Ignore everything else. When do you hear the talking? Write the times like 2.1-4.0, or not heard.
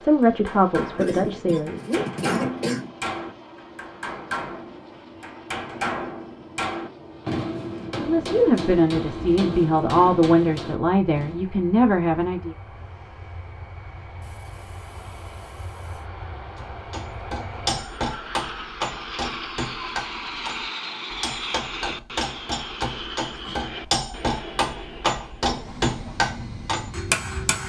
0.0-1.8, 8.0-12.6.